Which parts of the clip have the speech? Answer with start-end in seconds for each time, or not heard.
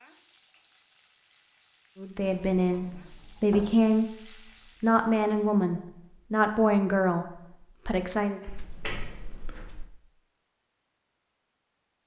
1.9-8.4.